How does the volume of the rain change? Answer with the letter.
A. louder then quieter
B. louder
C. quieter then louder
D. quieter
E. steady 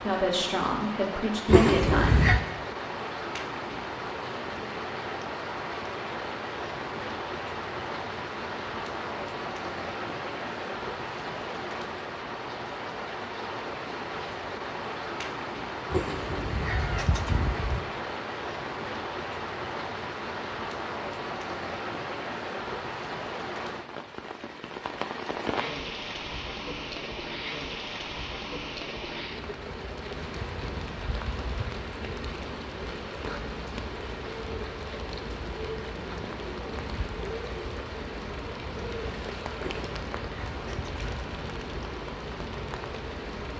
E.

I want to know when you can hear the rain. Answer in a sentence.
The rain can be heard from 0.0 to 43.5 s.